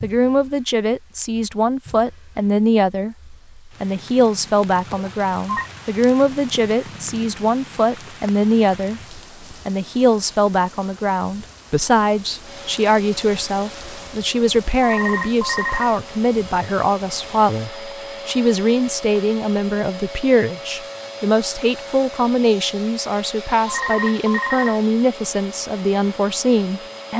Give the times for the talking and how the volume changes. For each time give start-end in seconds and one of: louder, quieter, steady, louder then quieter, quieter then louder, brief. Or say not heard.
0.0-27.1 steady.